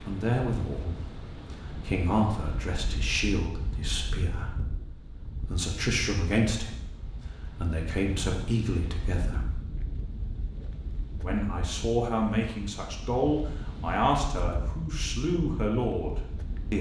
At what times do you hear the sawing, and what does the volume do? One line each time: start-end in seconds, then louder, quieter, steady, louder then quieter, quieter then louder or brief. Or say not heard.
not heard.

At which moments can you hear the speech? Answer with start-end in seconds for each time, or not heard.
0.0-6.8, 7.5-9.7, 11.2-16.7.